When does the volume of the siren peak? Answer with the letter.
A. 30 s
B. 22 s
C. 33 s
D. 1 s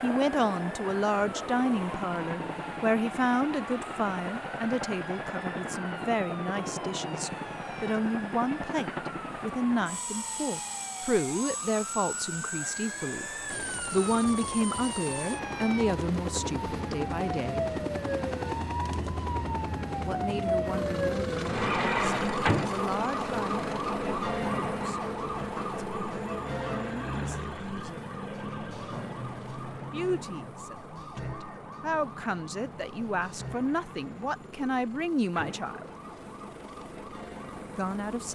B.